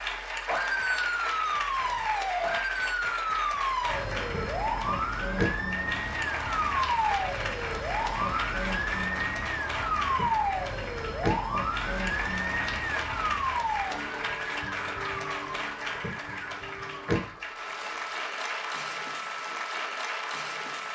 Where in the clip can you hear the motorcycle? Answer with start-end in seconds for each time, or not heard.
not heard.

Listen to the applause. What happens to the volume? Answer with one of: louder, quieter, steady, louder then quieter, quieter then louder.
steady.